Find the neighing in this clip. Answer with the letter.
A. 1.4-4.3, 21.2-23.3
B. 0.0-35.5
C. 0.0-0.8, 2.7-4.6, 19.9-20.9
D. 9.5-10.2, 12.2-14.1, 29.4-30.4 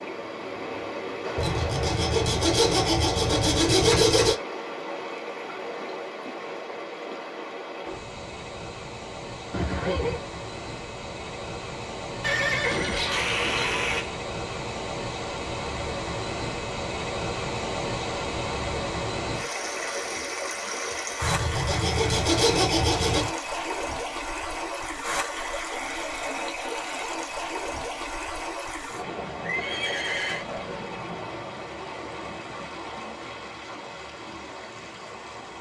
D.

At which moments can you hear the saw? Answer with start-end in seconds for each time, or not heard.
1.4-4.3, 21.2-23.3.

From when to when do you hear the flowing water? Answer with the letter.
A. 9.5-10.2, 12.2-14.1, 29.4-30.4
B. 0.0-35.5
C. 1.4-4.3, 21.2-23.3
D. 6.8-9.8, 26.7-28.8
B.